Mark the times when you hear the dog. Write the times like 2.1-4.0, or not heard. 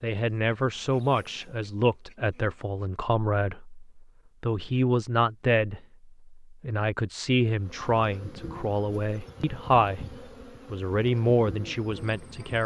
not heard.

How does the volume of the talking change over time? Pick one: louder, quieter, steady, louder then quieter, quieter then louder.
steady.